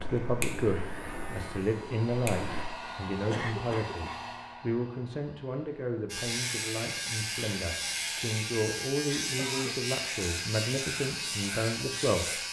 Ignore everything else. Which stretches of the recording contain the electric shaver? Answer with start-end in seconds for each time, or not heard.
0.0-2.6, 6.1-12.4.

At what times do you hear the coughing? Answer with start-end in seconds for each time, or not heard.
3.3-4.2, 9.3-9.8.